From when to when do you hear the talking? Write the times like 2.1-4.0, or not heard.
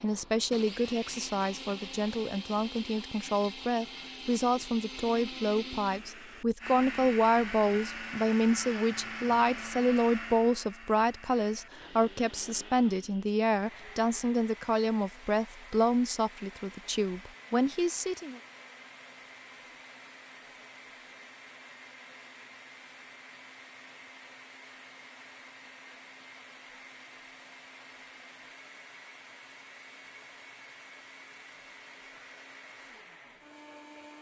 0.0-18.4.